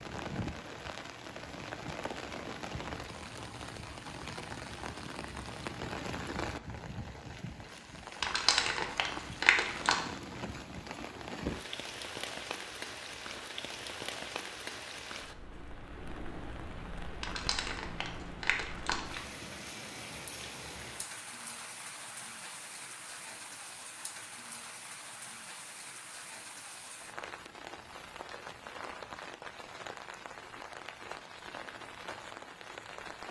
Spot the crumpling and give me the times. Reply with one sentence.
The crumpling can be heard from 8.2 to 10.0 s and from 17.2 to 19.2 s.